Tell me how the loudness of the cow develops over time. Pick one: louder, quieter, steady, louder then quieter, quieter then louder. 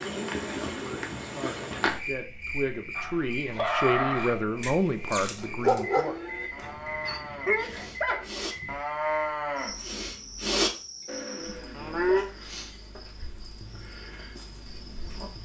louder.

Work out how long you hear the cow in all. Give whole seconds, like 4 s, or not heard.
8 s.